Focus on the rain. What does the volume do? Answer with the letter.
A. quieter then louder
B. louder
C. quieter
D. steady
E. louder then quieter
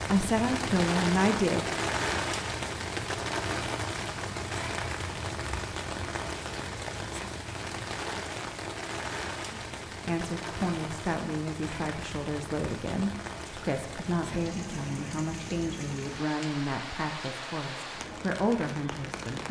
C.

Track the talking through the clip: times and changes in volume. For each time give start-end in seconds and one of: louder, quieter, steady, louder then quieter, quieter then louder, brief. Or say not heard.
0.0-1.6 brief
9.5-19.4 steady.